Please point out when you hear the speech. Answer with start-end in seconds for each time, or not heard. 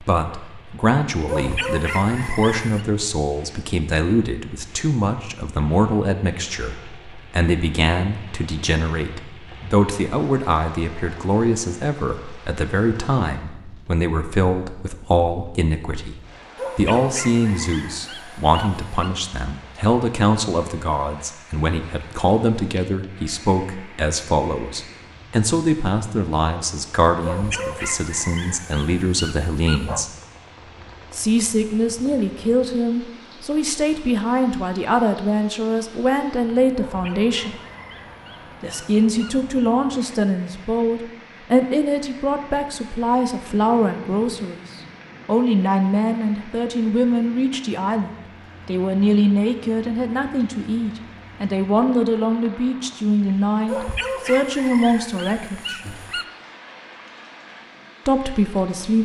0.0-16.1, 16.8-30.1, 31.1-37.5, 38.6-55.9, 58.0-59.0.